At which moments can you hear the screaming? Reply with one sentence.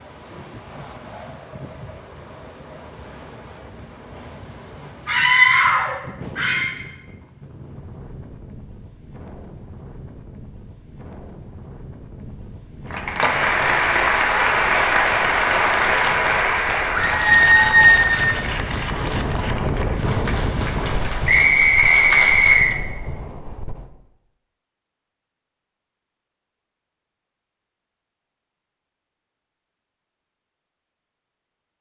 The screaming can be heard from 5.0 to 6.7 s and from 16.9 to 18.1 s.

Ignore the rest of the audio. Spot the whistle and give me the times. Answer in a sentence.
The whistle can be heard from 21.2 to 22.7 s.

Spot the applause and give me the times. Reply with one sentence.
The applause can be heard from 12.9 to 22.8 s.